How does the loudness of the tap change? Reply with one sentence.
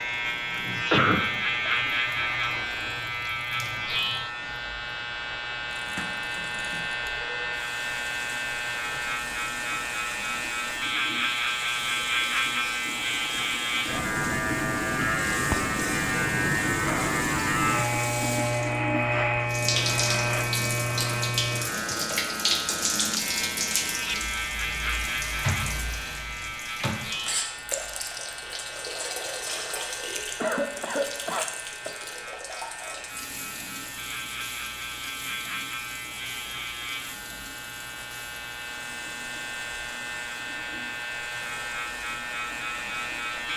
The loudness of the tap goes up, then down.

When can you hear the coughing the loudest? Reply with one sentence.
The volume of the coughing peaks at 1 second.